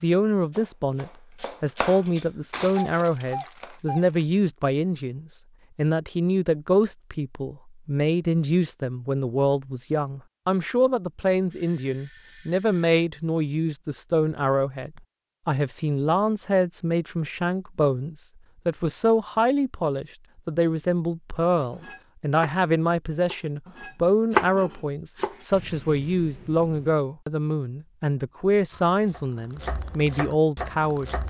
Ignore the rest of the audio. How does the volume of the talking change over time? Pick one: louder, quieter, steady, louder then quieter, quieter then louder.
steady.